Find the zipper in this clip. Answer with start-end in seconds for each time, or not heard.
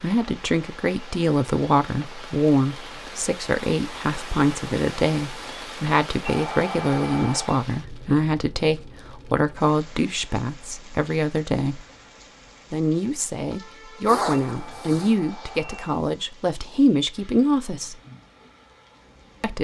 14.1-15.2.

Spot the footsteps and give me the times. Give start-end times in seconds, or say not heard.
not heard.